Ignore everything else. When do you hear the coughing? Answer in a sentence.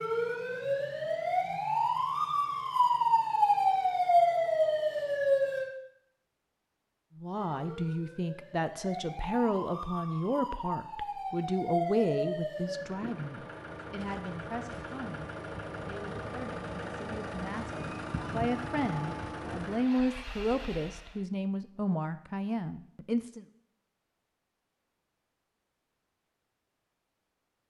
The coughing can't be heard in this clip.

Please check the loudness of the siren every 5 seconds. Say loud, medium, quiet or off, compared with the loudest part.
loud, medium, medium, off, off, off.